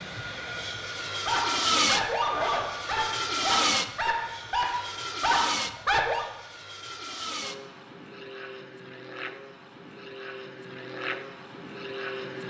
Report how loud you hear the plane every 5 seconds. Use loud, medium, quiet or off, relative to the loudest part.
loud, medium, medium.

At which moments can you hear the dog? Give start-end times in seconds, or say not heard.
1.2-6.2.